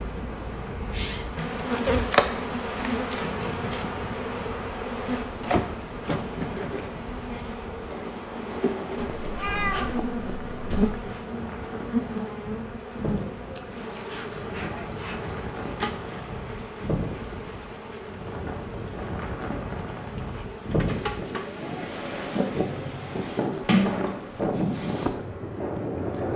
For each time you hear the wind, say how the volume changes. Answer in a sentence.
You can hear the wind from 0.0 to 26.3 s, getting louder.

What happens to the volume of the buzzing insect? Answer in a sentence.
The volume of the buzzing insect goes down.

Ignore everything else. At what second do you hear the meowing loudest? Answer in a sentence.
The loudest moment of the meowing is at 10 seconds.